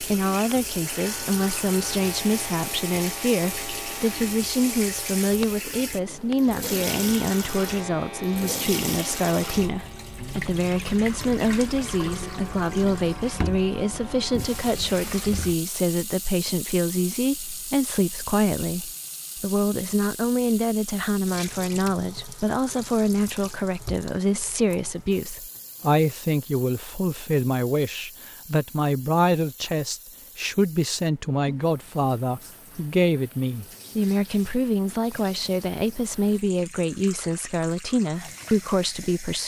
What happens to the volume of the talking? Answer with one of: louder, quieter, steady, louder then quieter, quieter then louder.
steady.